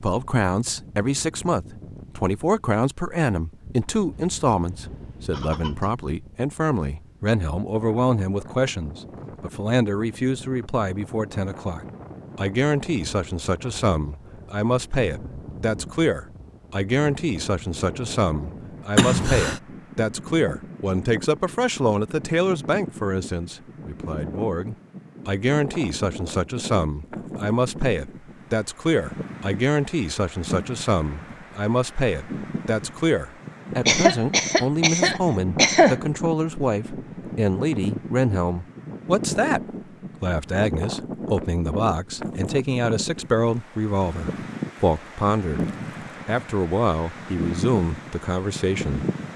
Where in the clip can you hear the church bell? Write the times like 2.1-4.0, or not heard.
not heard.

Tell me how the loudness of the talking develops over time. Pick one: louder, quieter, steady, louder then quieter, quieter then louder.
steady.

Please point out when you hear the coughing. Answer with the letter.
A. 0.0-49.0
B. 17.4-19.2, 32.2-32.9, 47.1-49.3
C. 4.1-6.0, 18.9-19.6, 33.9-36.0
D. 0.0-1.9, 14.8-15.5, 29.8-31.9
C.